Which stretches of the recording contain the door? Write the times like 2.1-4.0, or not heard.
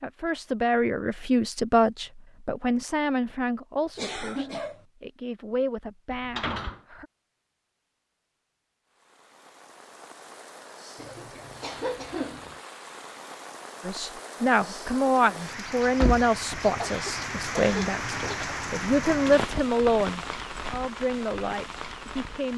6.1-6.8, 15.8-16.6.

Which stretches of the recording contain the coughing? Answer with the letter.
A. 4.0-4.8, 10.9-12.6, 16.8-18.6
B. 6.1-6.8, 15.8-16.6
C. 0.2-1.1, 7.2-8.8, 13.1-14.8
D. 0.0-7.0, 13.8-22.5
A.